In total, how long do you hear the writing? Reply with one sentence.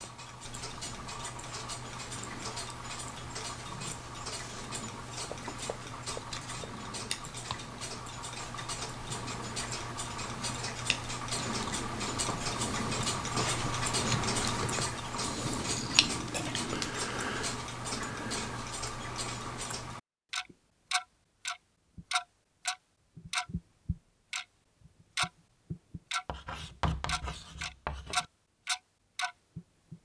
You can hear the writing for 5 seconds altogether.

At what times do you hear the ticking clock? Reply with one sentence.
The ticking clock can be heard from 0.0 to 30.0 s.